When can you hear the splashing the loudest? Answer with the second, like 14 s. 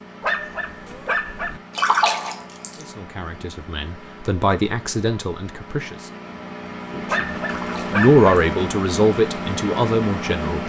2 s.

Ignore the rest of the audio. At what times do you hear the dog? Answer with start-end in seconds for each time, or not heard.
0.2-1.6, 7.0-8.2.